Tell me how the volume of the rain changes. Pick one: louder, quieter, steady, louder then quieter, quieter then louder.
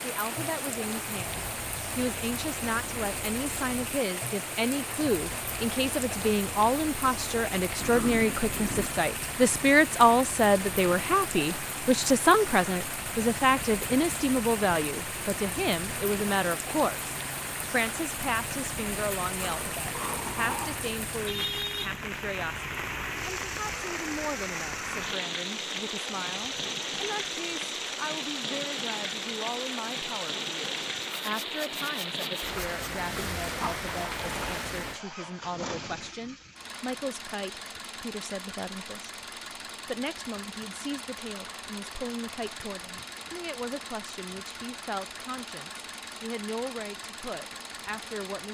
steady.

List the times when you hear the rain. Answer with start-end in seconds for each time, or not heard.
0.0-35.0.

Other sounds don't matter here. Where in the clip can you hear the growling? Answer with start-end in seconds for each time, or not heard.
7.8-8.9, 19.4-20.9, 33.5-34.7.